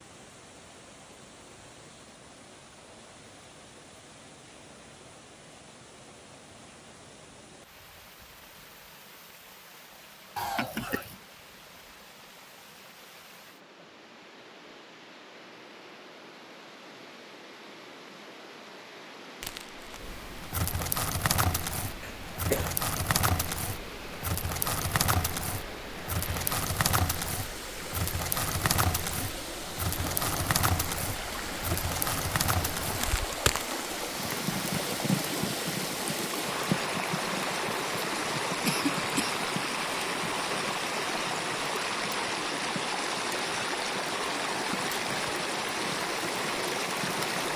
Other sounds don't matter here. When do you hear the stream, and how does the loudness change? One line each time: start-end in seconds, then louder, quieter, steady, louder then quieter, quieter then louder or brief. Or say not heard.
0.0-47.5 louder.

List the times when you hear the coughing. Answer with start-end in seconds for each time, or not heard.
10.3-11.2, 22.0-22.8, 38.6-39.4.